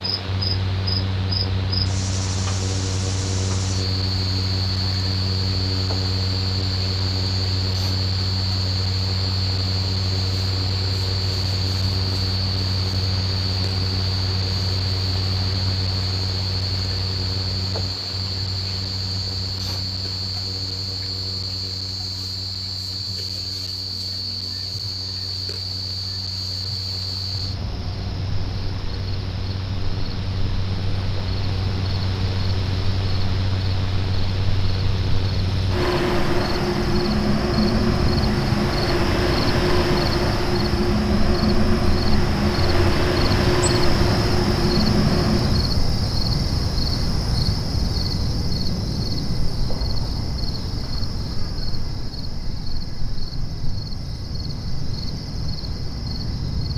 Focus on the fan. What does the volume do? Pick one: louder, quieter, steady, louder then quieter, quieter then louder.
quieter then louder.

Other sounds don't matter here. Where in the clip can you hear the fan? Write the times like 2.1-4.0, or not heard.
0.0-45.8.